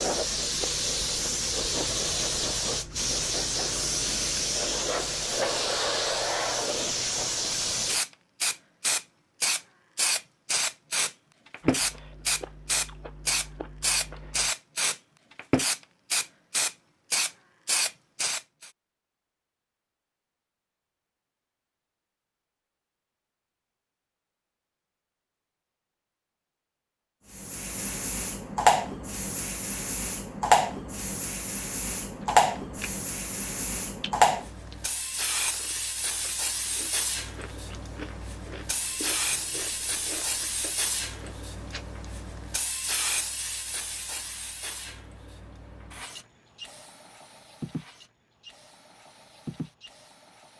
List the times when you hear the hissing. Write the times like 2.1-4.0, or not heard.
0.0-18.7, 27.3-50.5.